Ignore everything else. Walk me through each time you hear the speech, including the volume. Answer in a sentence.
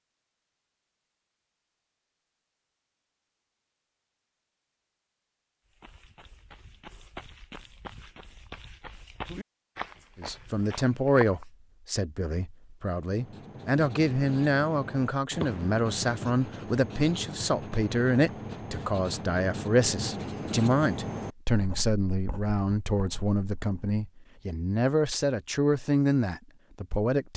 The speech can be heard from 10.2 to 27.3 s, at a steady volume.